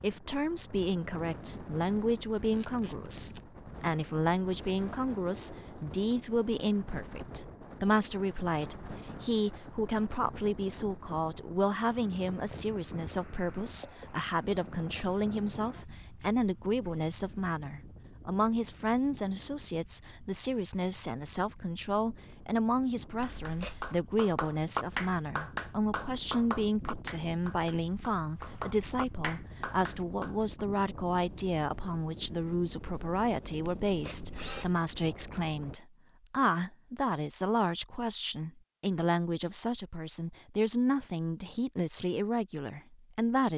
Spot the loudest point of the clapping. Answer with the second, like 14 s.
25 s.